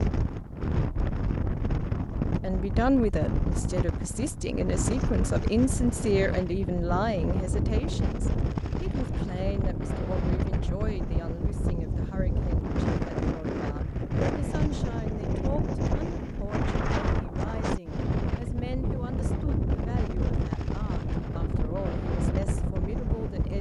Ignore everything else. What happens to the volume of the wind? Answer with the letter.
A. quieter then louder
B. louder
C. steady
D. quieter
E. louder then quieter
C.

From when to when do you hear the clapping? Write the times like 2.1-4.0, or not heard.
not heard.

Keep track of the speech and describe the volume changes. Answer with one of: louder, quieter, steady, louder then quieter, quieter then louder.
quieter.